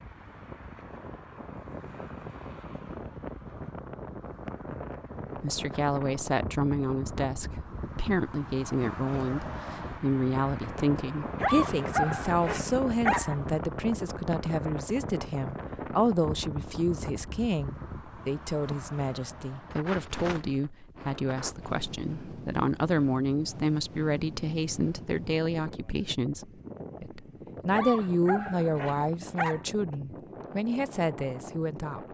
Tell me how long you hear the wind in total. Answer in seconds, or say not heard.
32 s.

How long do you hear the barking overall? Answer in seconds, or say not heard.
4 s.